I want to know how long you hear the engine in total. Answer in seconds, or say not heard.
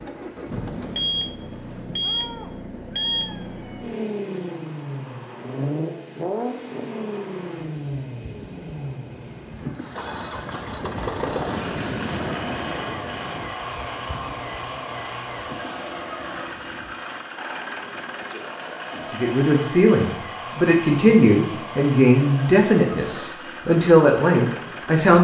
25 s.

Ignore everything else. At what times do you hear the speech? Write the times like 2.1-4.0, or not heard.
18.9-25.1.